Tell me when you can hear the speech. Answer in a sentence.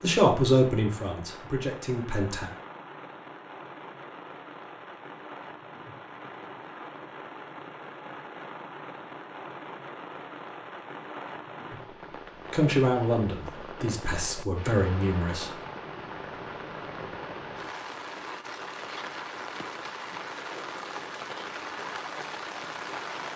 You can hear the speech from 0.0 to 2.5 s and from 12.5 to 15.6 s.